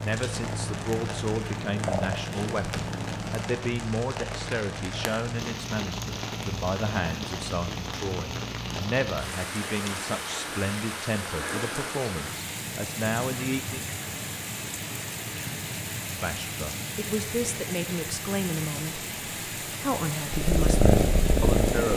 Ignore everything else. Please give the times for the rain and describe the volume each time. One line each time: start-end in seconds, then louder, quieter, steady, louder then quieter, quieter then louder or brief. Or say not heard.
0.0-21.9 steady.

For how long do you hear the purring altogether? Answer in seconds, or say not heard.
5 s.